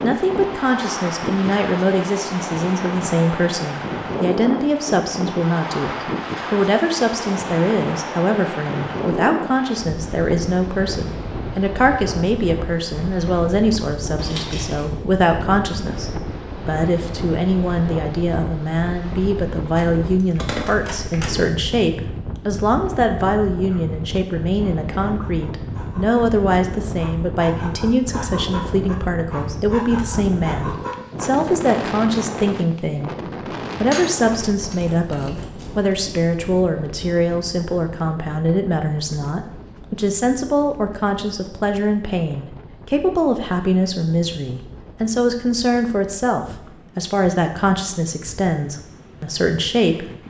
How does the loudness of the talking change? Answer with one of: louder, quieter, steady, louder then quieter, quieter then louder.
steady.